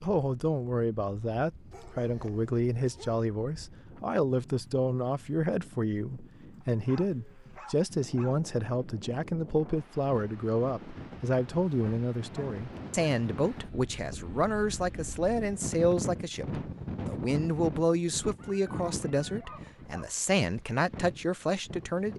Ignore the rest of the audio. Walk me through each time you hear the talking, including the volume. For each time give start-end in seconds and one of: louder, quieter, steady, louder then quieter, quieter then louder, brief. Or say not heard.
0.0-22.1 steady.